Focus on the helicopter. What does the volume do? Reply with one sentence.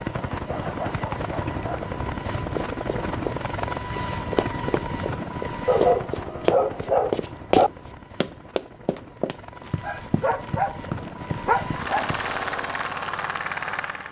The volume of the helicopter goes down, then up.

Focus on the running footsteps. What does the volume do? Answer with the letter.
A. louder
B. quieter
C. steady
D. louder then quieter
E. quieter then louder
D.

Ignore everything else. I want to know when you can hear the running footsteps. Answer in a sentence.
The running footsteps can be heard from 2.4 to 12.0 s.